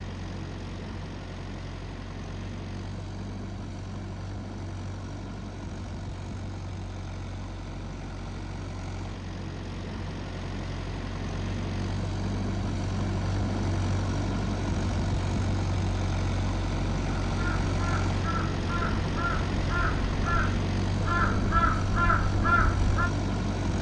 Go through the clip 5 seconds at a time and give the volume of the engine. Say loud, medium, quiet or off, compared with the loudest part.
medium, medium, loud, loud, loud.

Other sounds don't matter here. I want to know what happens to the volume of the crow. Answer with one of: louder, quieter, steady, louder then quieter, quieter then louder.
louder.